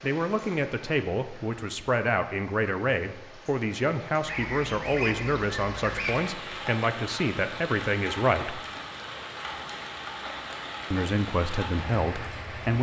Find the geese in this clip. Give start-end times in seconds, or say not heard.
4.2-6.2.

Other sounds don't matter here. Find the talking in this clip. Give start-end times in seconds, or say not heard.
0.0-8.6, 10.9-12.7.